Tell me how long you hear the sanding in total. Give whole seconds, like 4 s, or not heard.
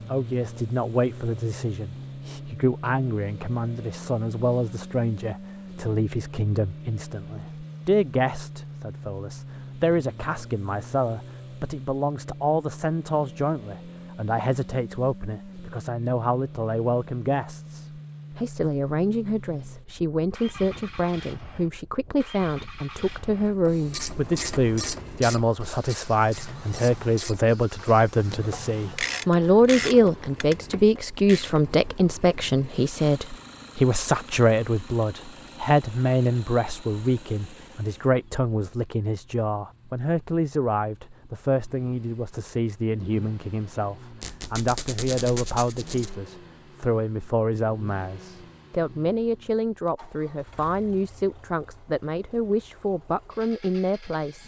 not heard.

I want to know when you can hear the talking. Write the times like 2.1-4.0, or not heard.
0.1-54.4.